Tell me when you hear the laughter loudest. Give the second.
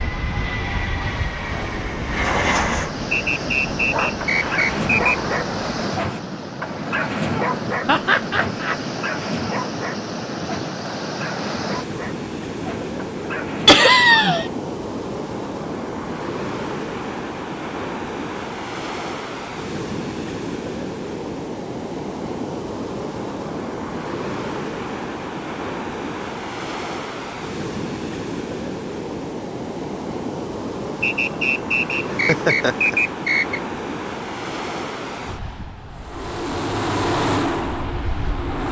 14 s.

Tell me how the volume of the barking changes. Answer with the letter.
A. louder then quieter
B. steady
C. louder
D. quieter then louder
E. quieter
E.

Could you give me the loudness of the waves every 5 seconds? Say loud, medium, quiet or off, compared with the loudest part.
loud, loud, loud, loud, loud, loud, loud, medium.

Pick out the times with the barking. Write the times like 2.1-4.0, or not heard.
3.8-14.1.